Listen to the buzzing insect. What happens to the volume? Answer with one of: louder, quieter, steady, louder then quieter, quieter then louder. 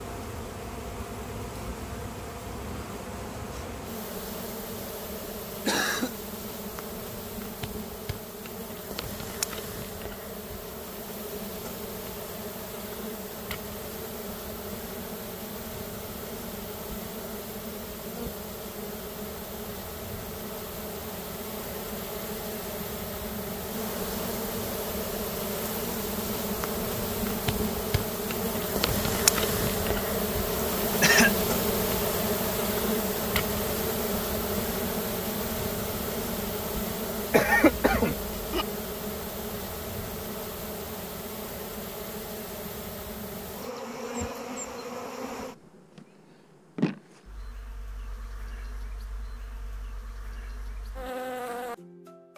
louder then quieter.